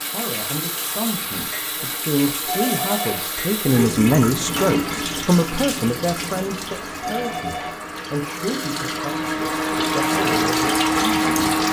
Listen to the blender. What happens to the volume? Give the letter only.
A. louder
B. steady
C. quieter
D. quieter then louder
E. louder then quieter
A.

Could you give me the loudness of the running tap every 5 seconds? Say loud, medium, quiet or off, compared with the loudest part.
loud, medium, loud.